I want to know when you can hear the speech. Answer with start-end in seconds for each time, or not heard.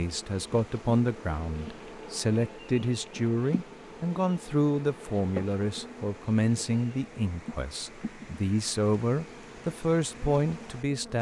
0.0-11.1.